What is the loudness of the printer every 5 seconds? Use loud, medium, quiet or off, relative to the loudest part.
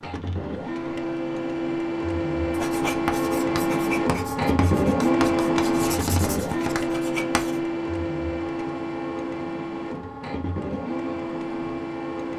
loud, loud, medium.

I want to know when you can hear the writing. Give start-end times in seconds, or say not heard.
2.5-7.6.